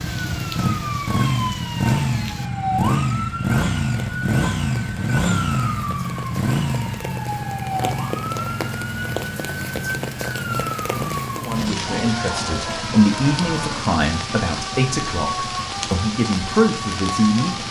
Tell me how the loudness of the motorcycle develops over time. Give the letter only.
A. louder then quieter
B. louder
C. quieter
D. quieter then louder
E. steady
C.